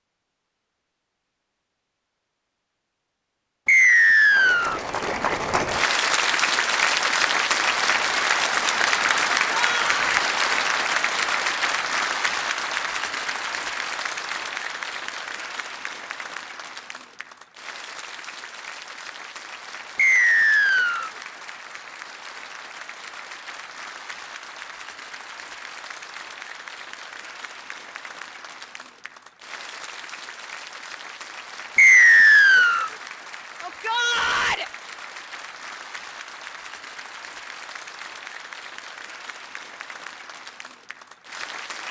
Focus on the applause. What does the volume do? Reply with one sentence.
The volume of the applause goes down.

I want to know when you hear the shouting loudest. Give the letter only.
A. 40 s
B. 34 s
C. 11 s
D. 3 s
B.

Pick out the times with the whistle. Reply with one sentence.
The whistle can be heard from 3.6 to 4.8 s, from 19.9 to 21.1 s and from 31.8 to 32.9 s.